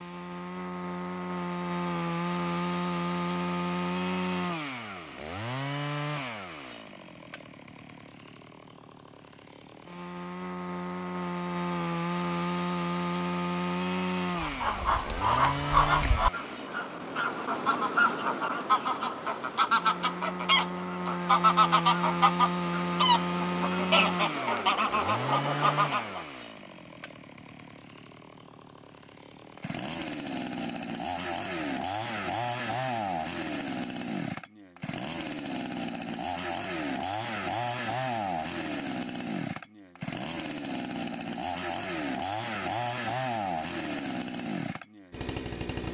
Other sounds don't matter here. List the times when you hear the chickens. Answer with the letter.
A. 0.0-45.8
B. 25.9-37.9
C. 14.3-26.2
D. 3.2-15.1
C.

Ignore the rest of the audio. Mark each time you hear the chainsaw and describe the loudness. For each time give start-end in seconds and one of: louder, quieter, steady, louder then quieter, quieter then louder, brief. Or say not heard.
0.0-45.8 steady.